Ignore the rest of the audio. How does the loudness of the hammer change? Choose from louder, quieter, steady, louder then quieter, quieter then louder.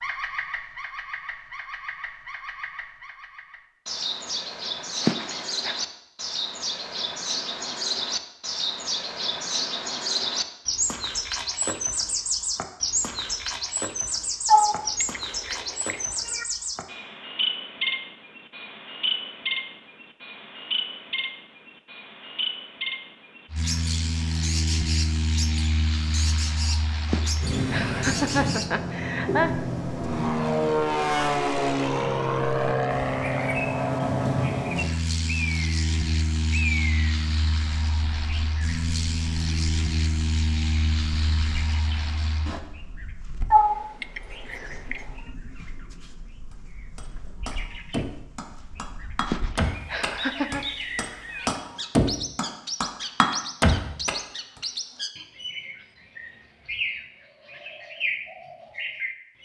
louder.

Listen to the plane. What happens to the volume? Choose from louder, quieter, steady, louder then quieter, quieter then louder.
louder then quieter.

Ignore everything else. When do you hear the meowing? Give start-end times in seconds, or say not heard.
14.4-16.4, 43.5-45.0.